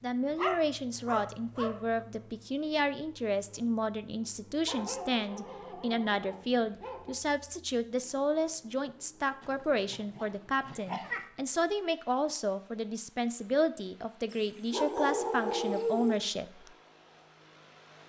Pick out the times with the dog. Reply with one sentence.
You can hear the dog from 0.3 to 2.0 s, from 4.7 to 7.2 s, from 9.4 to 11.2 s and from 14.3 to 16.2 s.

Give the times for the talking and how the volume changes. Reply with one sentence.
You can hear the talking from 0.0 to 16.5 s, at a steady volume.